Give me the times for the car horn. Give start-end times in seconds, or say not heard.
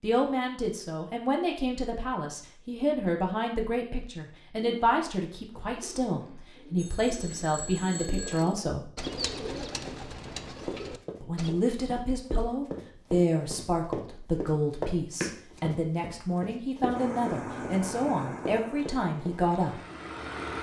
not heard.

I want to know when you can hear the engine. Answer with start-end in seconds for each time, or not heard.
16.9-20.5.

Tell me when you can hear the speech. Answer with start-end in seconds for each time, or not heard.
0.0-8.9, 11.2-19.8.